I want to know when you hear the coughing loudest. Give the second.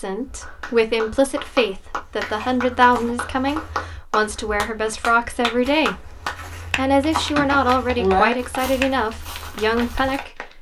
8 s.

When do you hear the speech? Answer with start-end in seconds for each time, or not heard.
0.0-6.2, 6.8-10.5.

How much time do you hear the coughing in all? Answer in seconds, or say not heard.
2 s.